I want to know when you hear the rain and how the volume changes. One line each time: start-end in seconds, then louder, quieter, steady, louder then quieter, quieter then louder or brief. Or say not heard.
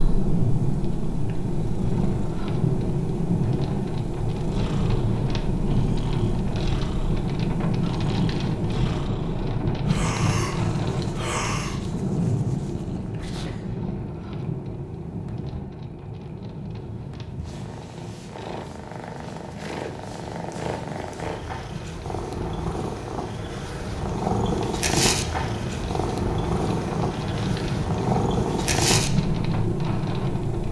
0.0-30.6 quieter then louder.